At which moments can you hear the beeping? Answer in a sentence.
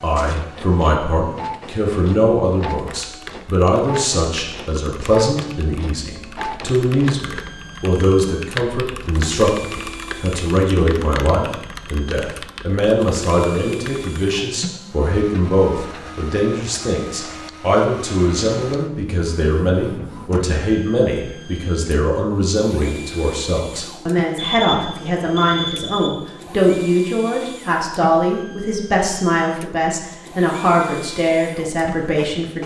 You can hear the beeping from 24.4 to 26.1 s.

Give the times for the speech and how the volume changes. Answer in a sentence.
The speech can be heard from 0.0 to 32.6 s, at a steady volume.